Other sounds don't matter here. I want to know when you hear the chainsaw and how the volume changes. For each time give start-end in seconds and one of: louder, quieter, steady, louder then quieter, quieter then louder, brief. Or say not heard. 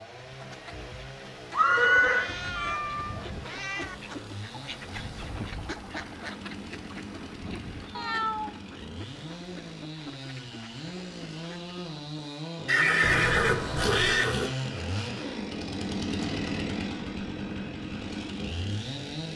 0.0-19.3 louder.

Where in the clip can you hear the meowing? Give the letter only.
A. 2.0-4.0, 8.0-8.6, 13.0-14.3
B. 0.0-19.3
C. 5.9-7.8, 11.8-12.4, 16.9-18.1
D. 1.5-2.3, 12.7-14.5
A.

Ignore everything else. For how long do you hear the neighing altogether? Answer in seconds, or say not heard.
3 s.